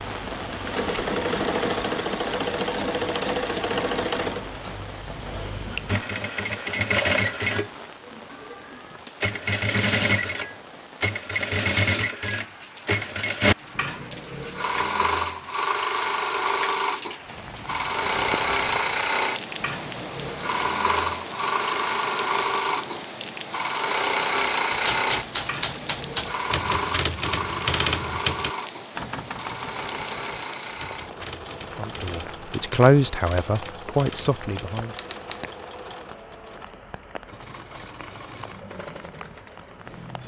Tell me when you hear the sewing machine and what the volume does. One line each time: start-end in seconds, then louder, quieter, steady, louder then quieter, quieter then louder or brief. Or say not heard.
0.0-40.2 quieter.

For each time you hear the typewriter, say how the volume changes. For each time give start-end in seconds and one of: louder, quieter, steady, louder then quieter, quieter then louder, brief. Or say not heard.
24.7-35.5 quieter.